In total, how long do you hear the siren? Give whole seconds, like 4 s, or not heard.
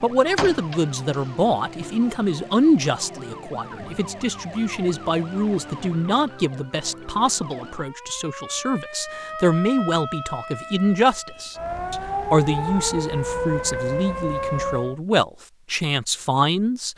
15 s.